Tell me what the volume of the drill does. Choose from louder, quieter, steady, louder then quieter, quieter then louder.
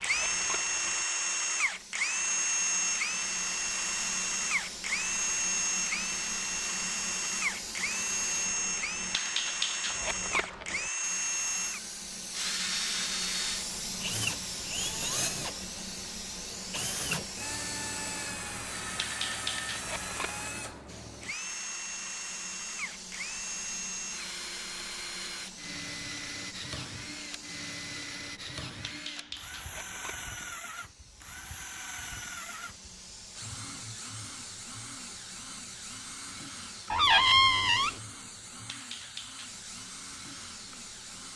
quieter.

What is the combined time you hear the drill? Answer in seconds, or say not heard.
41 s.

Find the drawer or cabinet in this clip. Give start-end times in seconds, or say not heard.
36.9-38.0.